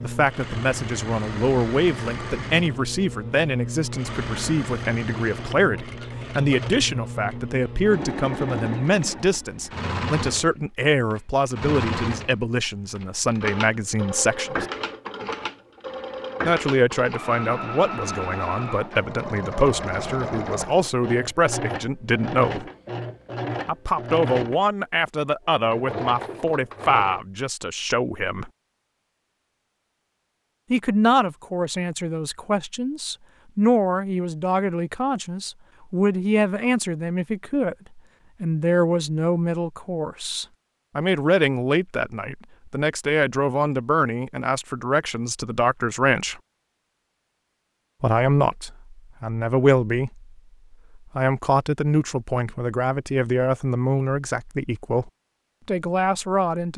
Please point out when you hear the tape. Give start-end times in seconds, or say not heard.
not heard.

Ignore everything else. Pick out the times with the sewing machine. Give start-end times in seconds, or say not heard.
0.0-27.2.